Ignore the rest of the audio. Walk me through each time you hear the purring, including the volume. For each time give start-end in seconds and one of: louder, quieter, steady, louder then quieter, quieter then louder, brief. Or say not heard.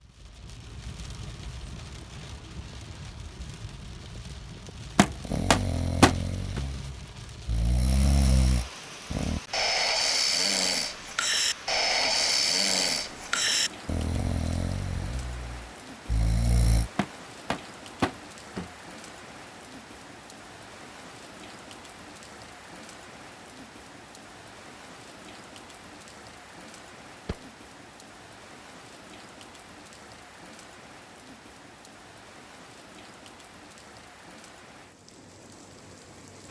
not heard.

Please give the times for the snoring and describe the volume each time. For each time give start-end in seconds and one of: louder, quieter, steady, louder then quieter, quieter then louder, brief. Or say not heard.
5.2-16.9 louder then quieter.